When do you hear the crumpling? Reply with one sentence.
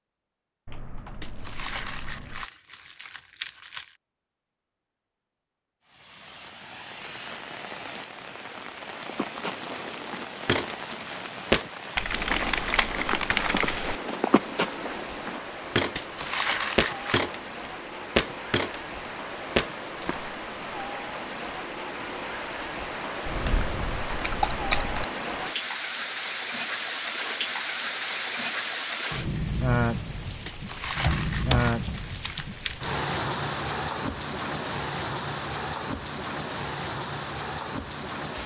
The crumpling can be heard from 1.2 to 4.0 s, from 15.9 to 17.2 s and from 30.4 to 32.8 s.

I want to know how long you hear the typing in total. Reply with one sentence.
You can hear the typing for 7 seconds altogether.